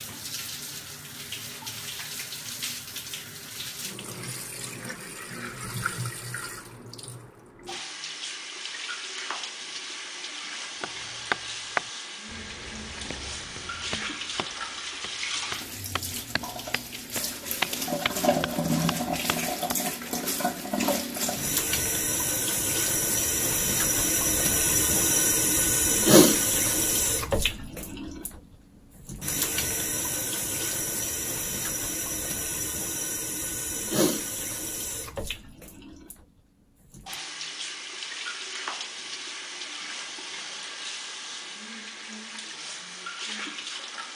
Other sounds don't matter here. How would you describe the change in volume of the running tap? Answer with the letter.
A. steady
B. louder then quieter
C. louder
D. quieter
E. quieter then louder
B.